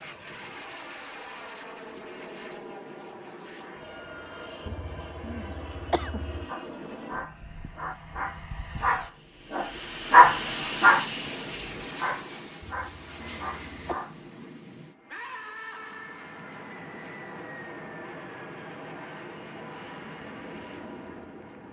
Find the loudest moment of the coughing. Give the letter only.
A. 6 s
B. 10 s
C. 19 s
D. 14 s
A.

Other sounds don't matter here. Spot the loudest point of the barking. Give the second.
10 s.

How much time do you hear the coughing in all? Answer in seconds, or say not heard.
3 s.